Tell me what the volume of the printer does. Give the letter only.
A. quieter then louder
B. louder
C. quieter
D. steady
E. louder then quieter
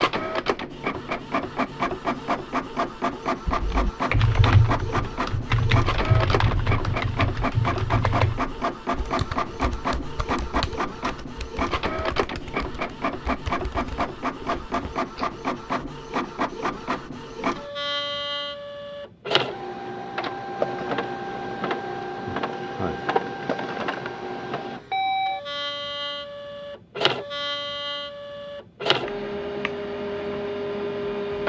D.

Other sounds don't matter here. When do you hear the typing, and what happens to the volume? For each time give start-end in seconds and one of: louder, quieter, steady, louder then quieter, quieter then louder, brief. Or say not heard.
3.5-15.3 quieter.